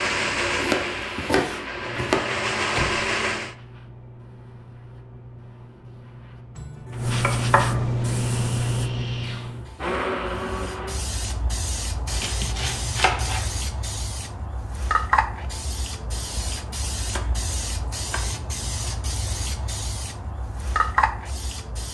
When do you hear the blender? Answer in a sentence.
You can hear the blender from 0.0 to 3.5 s and from 8.0 to 11.2 s.